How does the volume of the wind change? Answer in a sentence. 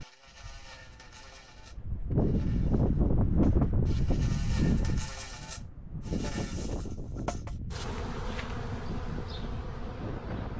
The loudness of the wind goes up, then down.